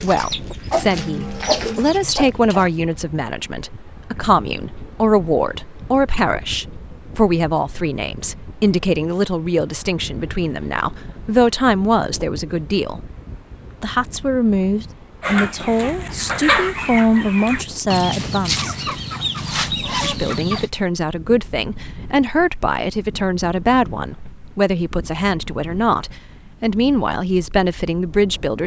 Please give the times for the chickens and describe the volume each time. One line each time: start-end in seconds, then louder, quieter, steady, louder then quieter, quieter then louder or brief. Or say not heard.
0.0-2.6 brief
15.2-20.7 steady.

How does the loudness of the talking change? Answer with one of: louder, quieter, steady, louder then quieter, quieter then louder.
steady.